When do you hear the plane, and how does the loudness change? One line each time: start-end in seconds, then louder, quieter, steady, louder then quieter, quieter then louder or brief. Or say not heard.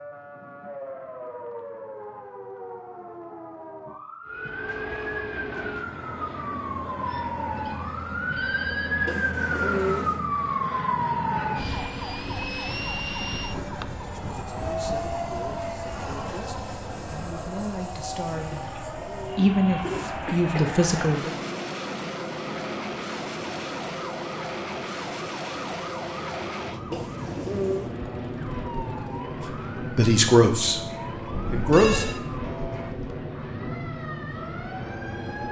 4.2-35.4 steady.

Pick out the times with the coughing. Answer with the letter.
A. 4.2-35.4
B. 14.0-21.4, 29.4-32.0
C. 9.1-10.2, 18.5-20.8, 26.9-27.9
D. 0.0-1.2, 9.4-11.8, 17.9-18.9
C.